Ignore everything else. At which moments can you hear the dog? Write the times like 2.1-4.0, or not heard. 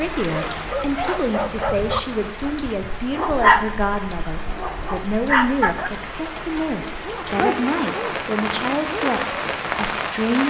0.3-9.2.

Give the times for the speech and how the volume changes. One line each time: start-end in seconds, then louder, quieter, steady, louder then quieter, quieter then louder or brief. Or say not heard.
0.0-10.4 steady.